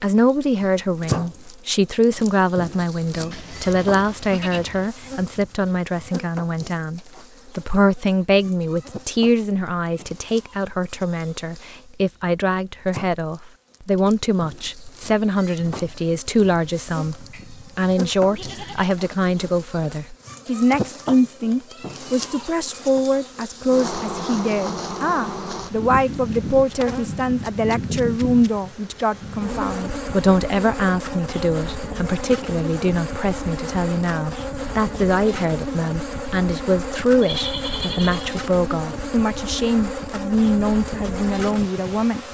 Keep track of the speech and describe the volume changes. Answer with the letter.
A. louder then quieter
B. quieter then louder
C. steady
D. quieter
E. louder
C.